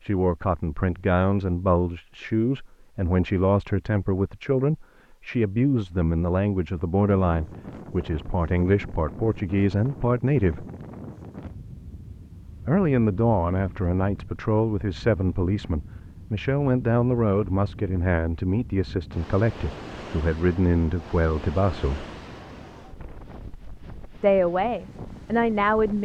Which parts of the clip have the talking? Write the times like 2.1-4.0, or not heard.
0.0-10.7, 12.7-22.1, 24.2-25.9.